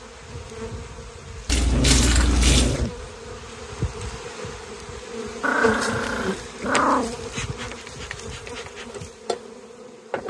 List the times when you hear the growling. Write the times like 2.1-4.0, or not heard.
1.6-3.1, 5.4-7.2.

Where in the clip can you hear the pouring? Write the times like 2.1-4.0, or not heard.
1.4-2.8.